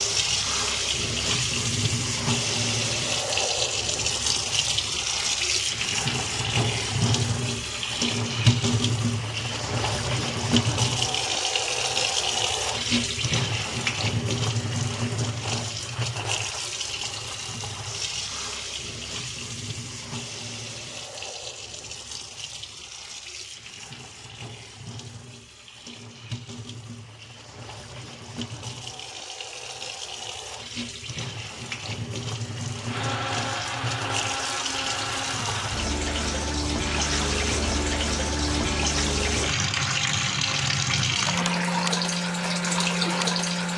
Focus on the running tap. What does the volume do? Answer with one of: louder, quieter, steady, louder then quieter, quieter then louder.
quieter then louder.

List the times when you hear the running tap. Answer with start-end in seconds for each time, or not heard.
0.0-43.7.